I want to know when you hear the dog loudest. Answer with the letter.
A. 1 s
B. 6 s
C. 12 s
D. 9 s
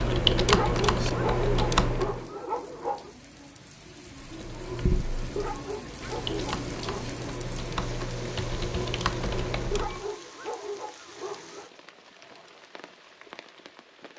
A.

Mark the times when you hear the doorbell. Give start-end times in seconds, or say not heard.
not heard.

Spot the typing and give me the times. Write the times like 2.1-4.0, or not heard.
0.0-2.2, 4.2-10.1.